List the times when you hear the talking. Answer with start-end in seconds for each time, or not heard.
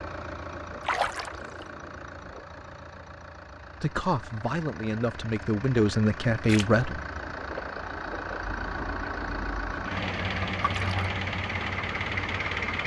3.8-7.0.